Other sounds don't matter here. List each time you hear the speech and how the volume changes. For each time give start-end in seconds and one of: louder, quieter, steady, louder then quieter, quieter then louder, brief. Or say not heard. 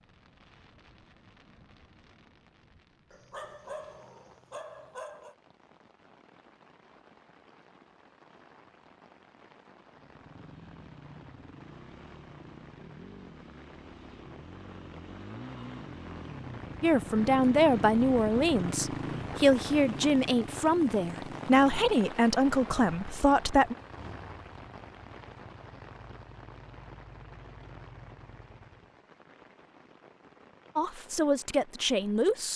16.8-23.8 steady
30.8-32.5 brief.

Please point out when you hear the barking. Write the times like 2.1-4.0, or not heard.
3.1-5.3.